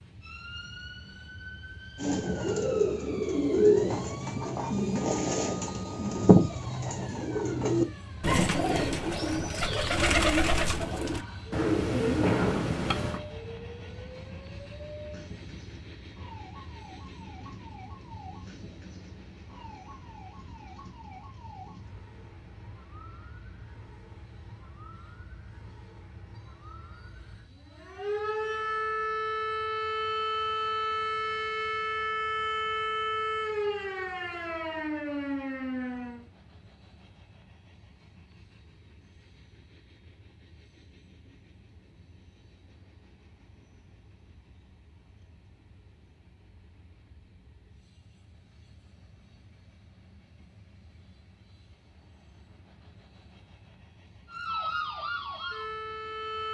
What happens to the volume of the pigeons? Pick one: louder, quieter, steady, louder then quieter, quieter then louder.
steady.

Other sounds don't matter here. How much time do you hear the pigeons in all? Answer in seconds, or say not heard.
11 s.